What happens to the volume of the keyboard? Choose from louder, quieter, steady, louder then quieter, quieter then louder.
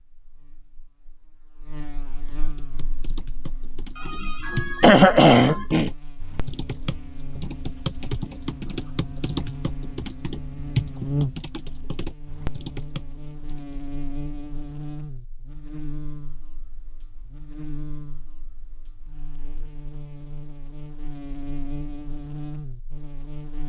louder then quieter.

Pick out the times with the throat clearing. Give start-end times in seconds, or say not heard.
4.0-5.9.